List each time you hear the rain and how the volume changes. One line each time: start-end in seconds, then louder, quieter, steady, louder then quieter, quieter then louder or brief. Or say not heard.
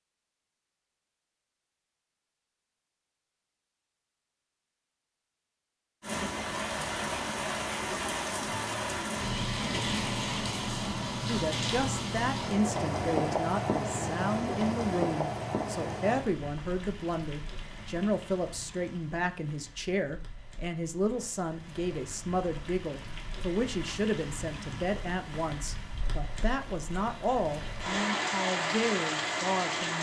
6.0-29.9 quieter then louder.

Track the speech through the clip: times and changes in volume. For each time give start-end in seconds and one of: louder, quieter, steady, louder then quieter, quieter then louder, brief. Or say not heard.
11.2-29.9 steady.